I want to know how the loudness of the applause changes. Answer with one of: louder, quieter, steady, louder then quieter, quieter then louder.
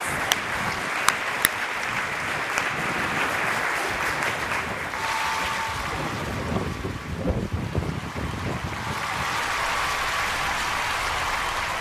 quieter then louder.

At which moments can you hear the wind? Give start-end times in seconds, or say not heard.
0.0-11.7.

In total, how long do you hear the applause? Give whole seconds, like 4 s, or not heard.
12 s.